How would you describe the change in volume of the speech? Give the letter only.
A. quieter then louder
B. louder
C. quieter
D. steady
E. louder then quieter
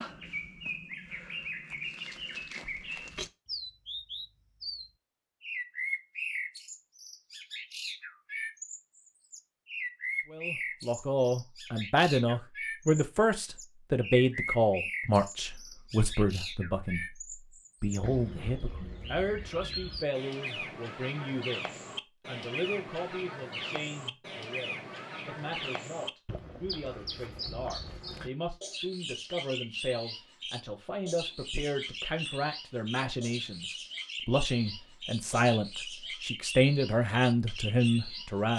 A.